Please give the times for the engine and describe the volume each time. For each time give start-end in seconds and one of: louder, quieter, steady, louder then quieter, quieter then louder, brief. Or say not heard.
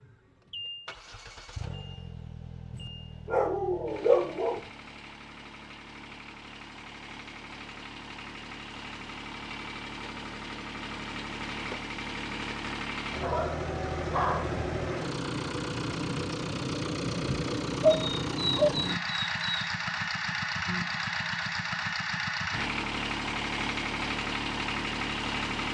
0.0-25.6 louder.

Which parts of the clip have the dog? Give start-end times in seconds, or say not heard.
2.7-4.6, 13.2-14.6, 17.8-19.7.